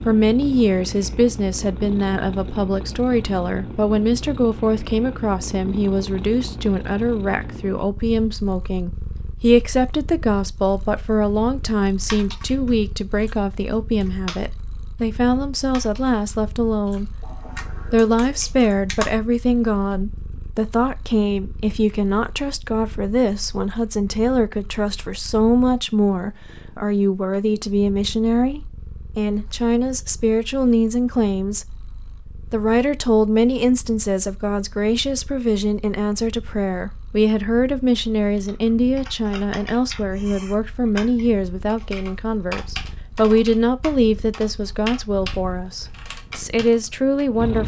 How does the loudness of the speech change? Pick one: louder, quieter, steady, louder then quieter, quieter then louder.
steady.